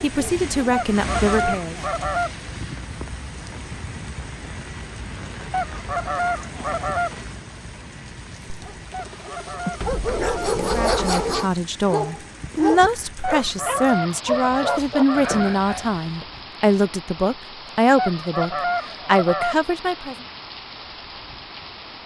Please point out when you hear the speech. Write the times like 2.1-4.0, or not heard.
0.0-1.8, 10.7-20.1.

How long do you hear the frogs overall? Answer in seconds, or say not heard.
not heard.